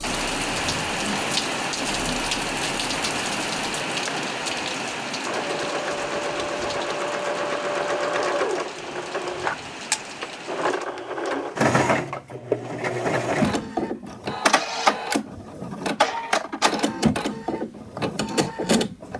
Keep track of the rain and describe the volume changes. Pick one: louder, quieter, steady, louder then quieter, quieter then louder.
quieter.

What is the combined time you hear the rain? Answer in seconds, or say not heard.
11 s.